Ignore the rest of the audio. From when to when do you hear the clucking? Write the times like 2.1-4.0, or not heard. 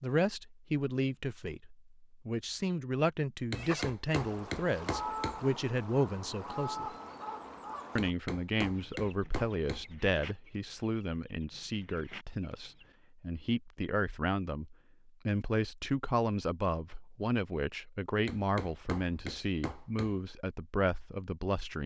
3.5-12.9.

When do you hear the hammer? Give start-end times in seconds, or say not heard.
3.5-5.4, 8.0-9.8, 18.2-20.1.